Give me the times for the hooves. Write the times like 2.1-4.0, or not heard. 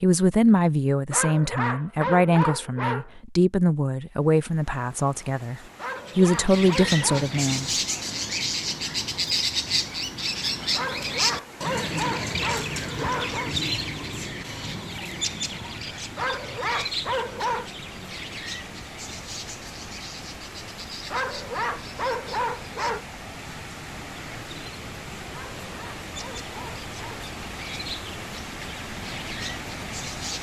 not heard.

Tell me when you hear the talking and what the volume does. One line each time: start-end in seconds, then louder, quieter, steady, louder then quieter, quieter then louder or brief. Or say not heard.
0.0-7.7 quieter then louder.